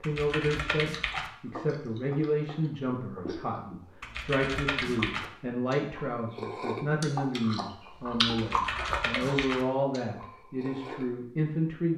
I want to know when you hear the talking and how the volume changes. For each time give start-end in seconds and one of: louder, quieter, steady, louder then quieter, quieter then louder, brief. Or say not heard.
0.0-11.9 steady.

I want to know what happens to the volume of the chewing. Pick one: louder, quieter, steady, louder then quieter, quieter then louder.
louder then quieter.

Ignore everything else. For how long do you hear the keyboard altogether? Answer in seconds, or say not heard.
4 s.